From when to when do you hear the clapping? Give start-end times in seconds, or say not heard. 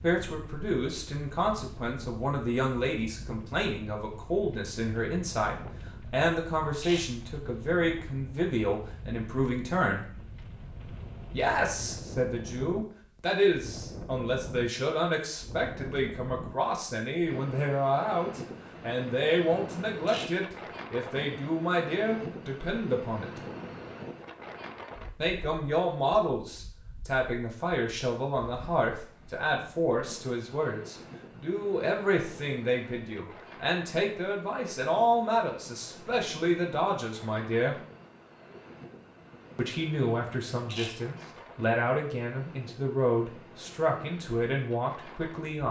not heard.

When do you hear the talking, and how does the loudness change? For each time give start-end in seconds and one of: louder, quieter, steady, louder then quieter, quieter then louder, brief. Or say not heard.
0.0-10.1 steady
11.3-23.4 steady
25.1-37.8 steady
39.5-45.6 steady.